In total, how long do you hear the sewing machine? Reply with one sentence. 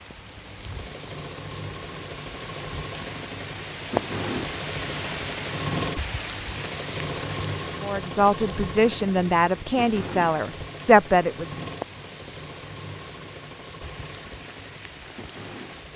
You can hear the sewing machine for 16 seconds altogether.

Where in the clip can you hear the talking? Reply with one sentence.
The talking can be heard from 7.8 to 11.5 s.